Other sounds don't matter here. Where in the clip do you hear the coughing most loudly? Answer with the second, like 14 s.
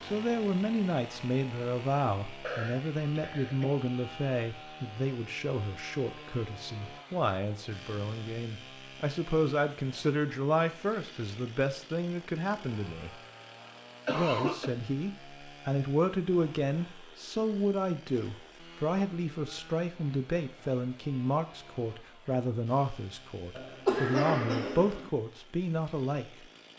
24 s.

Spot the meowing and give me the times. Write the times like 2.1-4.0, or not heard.
not heard.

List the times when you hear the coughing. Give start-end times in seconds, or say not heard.
2.4-3.8, 13.6-14.7, 23.6-25.1.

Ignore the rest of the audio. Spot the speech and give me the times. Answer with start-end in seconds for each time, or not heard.
0.0-13.1, 14.1-26.2.